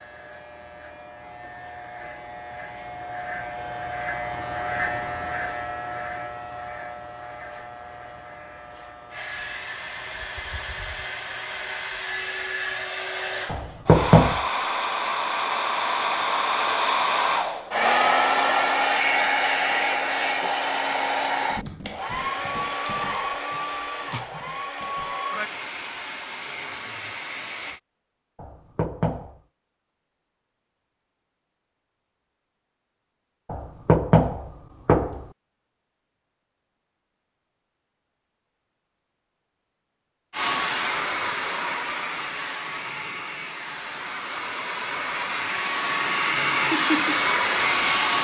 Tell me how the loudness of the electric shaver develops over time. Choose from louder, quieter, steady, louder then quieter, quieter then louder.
louder then quieter.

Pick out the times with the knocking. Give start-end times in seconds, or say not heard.
13.4-14.4, 28.4-29.4, 33.5-35.2.